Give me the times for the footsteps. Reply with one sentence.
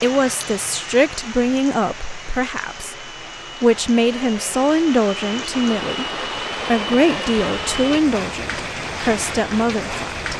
The footsteps can't be heard in this clip.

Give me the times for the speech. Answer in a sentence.
You can hear the speech from 0.0 to 6.0 s and from 6.7 to 10.3 s.